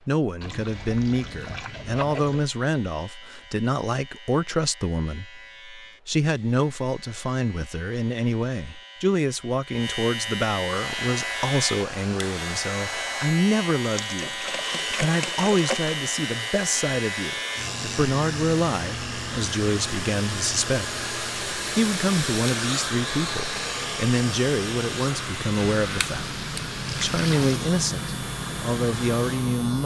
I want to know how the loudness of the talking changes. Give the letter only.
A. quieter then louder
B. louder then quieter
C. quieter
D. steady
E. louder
D.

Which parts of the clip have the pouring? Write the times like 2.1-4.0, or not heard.
0.4-2.4, 13.8-15.9, 25.8-27.6.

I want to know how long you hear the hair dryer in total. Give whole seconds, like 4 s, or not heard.
19 s.